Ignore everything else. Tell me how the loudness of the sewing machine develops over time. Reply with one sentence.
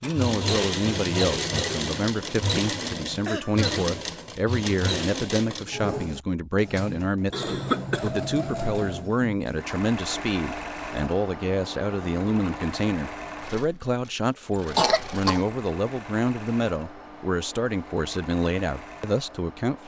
The volume of the sewing machine goes down.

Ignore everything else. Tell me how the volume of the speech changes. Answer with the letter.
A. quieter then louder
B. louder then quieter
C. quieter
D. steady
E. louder
D.